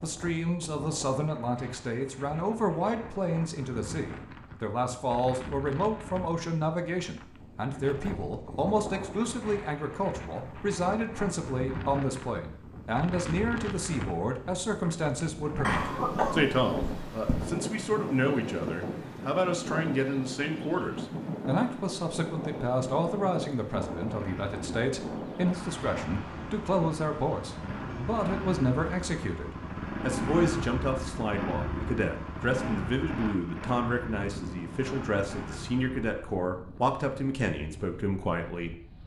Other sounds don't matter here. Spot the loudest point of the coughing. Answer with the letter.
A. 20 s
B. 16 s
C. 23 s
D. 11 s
B.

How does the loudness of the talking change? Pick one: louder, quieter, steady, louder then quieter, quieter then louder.
steady.